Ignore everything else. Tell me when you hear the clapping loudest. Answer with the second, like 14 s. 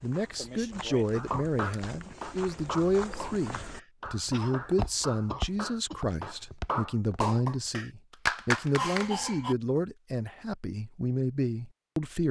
8 s.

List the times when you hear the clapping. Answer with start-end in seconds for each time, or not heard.
1.1-9.1.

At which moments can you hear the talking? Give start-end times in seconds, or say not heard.
0.0-12.2.